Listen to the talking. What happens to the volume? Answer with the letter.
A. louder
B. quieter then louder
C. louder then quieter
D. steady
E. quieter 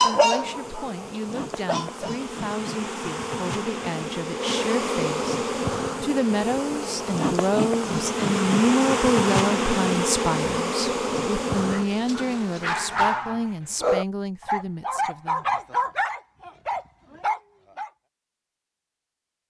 C.